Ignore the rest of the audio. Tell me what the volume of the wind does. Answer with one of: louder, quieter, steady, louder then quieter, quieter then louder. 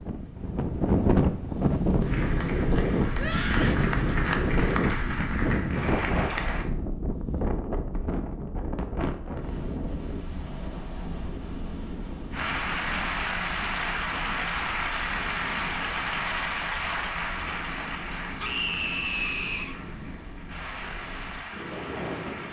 quieter.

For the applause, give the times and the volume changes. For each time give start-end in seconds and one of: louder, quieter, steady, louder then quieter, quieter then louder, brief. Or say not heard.
2.0-6.7 louder
12.3-22.4 quieter.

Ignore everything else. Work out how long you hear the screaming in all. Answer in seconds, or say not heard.
2 s.